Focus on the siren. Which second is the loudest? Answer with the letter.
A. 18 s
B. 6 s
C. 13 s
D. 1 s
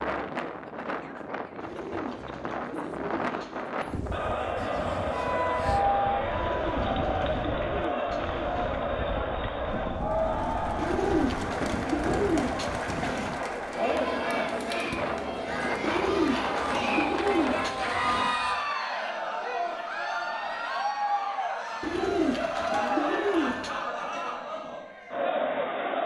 B.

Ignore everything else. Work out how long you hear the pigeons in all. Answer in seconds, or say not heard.
12 s.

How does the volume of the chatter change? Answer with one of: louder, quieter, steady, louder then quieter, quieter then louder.
steady.